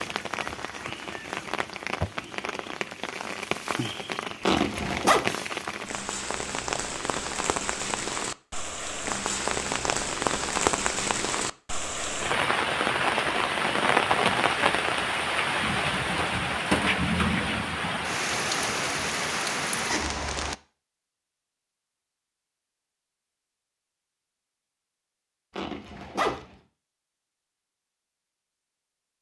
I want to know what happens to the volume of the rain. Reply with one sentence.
The volume of the rain goes up.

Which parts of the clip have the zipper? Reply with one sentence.
You can hear the zipper from 4.4 to 5.2 s and from 25.6 to 26.4 s.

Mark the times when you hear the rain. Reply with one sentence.
You can hear the rain from 0.0 to 20.6 s.